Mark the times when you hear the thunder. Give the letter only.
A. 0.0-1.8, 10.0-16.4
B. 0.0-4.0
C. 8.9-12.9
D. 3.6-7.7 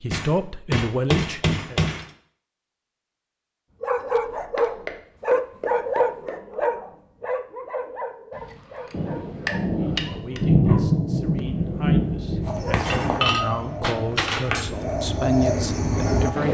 C.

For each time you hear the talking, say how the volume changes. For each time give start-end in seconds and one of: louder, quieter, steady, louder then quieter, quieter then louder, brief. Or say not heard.
0.0-1.8 brief
10.0-16.4 louder.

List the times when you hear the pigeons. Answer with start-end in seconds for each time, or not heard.
12.4-16.4.